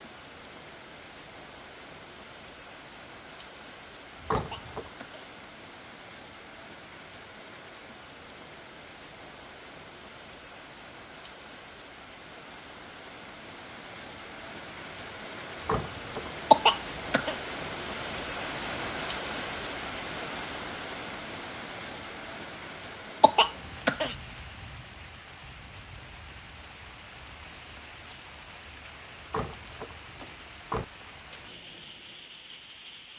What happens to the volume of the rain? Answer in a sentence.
The loudness of the rain goes up, then down.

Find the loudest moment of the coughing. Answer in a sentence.
The volume of the coughing peaks at 17 seconds.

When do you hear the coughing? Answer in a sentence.
You can hear the coughing from 4.3 to 5.2 s, from 16.5 to 17.4 s and from 23.2 to 24.1 s.